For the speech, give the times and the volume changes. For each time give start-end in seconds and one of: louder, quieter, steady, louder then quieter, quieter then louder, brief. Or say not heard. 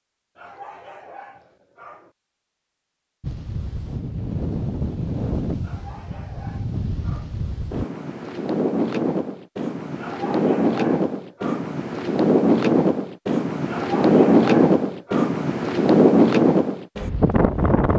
not heard.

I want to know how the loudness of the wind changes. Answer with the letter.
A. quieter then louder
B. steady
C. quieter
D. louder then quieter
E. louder
E.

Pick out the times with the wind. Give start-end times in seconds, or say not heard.
3.2-17.9.